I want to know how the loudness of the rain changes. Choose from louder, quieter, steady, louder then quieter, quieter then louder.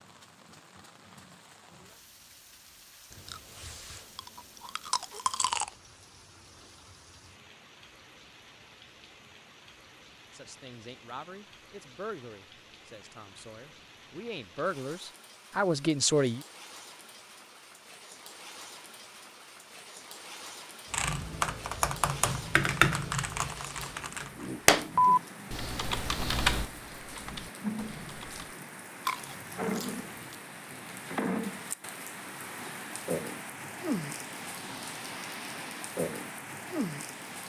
louder.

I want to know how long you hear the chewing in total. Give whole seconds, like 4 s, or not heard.
4 s.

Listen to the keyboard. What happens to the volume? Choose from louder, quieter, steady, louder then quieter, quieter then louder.
louder then quieter.